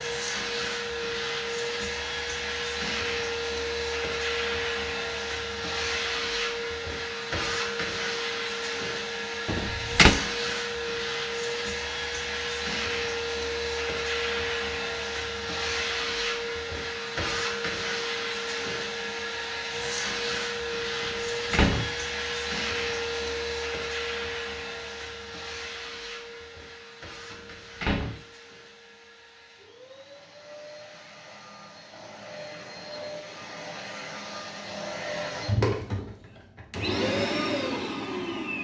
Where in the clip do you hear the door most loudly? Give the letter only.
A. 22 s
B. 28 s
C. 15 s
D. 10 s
D.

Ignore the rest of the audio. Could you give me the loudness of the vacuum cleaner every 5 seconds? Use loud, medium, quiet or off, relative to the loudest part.
loud, loud, loud, loud, loud, quiet, medium, loud.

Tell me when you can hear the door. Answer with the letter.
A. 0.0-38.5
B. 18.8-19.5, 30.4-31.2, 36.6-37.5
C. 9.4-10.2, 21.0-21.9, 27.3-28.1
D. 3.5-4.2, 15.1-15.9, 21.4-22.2
C.